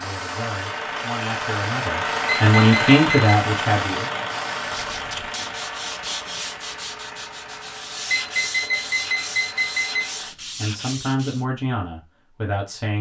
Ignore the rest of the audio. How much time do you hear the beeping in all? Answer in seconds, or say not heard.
3 s.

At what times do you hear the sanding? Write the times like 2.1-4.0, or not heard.
4.5-11.4.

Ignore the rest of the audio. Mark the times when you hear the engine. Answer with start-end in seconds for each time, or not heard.
0.0-10.3.